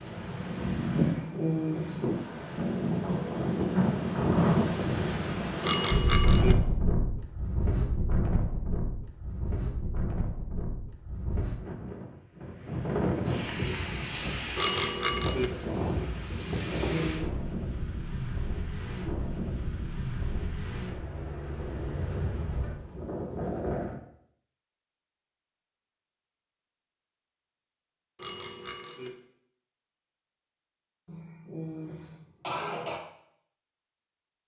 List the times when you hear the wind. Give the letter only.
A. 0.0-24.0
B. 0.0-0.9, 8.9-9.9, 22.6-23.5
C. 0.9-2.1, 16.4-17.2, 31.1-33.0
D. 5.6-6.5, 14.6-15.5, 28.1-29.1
A.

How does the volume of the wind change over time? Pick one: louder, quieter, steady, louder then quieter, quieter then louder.
quieter.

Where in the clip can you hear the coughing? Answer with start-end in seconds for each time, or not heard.
0.9-2.1, 16.4-17.2, 31.1-33.0.